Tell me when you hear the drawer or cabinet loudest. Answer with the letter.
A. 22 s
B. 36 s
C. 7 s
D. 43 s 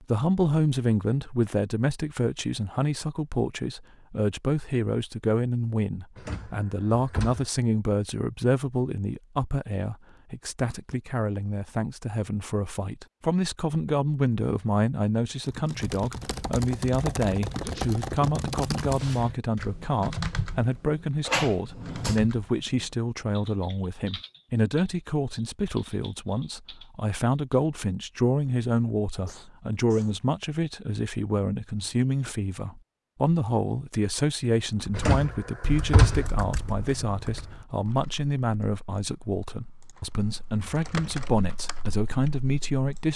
B.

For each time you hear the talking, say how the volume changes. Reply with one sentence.
The talking can be heard from 0.0 to 43.1 s, at a steady volume.